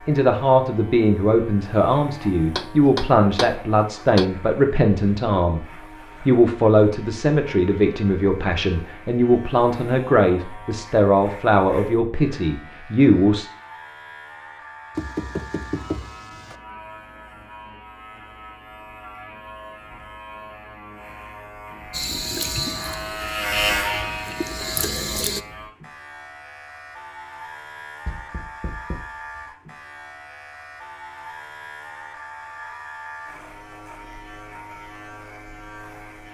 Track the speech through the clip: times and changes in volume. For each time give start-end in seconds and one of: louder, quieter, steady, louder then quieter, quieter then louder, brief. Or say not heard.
0.1-13.4 steady.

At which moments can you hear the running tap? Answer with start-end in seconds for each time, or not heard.
21.9-25.4.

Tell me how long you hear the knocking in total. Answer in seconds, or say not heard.
5 s.